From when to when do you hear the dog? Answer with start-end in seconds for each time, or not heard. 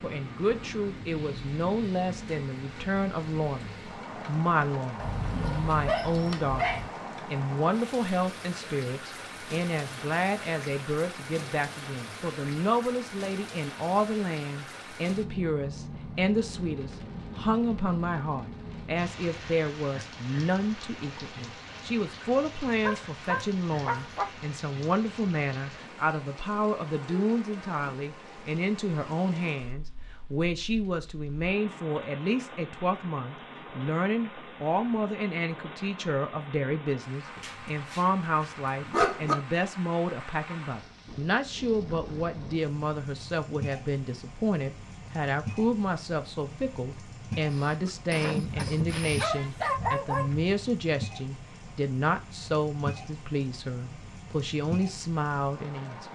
5.0-6.9, 22.9-24.3, 37.4-39.4, 48.4-50.5.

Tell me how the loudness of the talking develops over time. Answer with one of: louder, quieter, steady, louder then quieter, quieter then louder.
steady.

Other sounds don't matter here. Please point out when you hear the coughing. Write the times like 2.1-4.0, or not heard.
47.3-49.3.